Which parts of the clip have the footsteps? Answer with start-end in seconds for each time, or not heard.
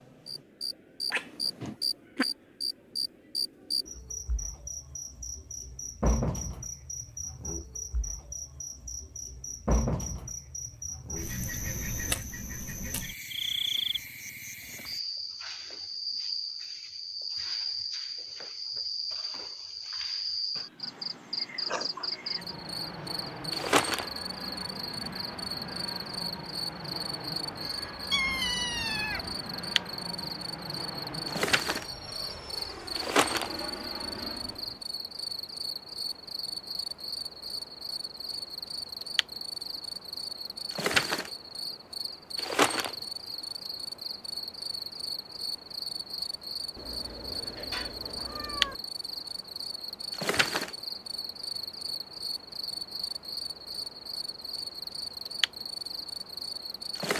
not heard.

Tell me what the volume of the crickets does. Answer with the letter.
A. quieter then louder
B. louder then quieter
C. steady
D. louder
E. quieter
C.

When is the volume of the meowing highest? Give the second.
28 s.